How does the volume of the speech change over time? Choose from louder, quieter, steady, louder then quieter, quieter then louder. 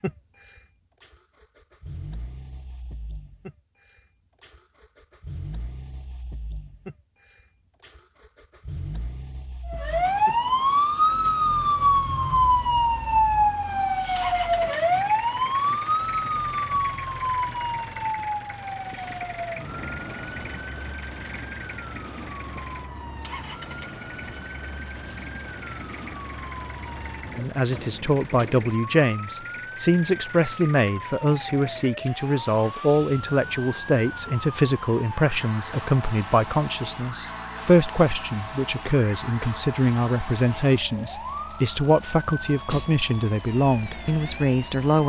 steady.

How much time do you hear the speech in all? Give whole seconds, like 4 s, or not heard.
18 s.